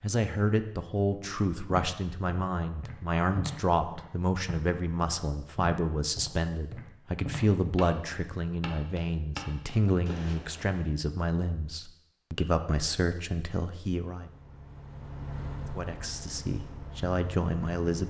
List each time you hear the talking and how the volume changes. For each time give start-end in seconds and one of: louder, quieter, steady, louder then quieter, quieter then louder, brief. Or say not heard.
0.0-14.3 steady
15.7-18.0 brief.